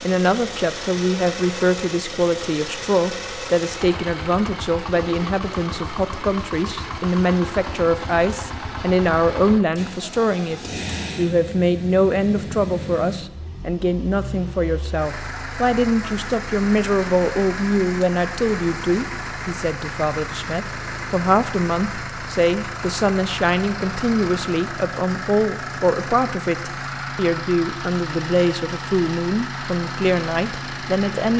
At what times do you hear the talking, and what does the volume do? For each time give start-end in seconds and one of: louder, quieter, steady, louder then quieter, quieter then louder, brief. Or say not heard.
0.0-31.3 steady.